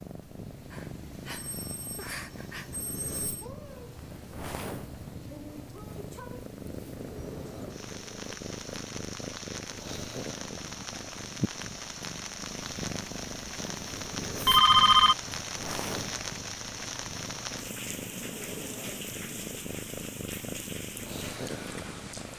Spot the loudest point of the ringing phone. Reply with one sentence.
The volume of the ringing phone peaks at 15 seconds.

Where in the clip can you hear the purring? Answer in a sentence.
You can hear the purring from 0.0 to 22.3 s.